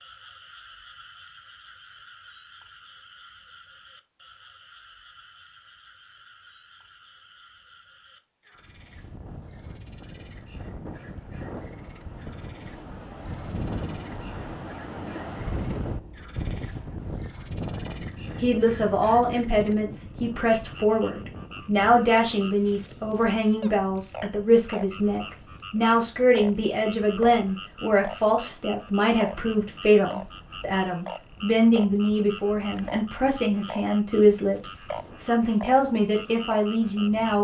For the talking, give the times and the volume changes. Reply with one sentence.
The talking can be heard from 18.4 to 37.3 s, at a steady volume.